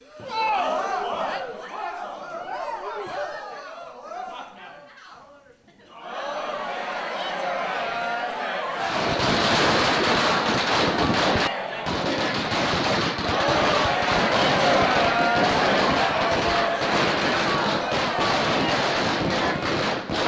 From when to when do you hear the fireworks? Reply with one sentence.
The fireworks can be heard from 8.8 to 20.2 s.